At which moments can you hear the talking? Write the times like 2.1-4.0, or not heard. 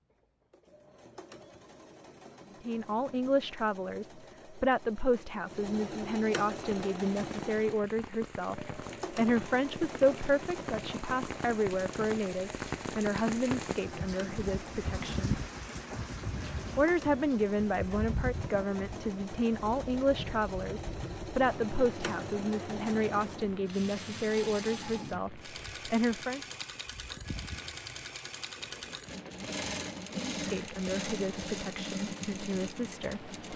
2.6-15.4, 16.8-26.4, 30.3-33.4.